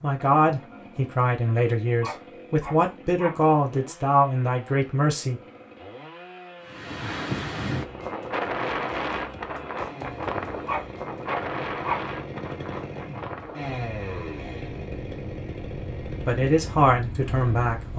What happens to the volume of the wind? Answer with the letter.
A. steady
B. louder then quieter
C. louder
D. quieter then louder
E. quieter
E.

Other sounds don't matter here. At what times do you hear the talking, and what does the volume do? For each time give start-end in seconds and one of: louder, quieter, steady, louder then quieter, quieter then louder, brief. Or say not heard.
0.0-5.4 steady
16.2-17.9 brief.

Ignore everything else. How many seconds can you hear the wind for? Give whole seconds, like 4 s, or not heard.
11 s.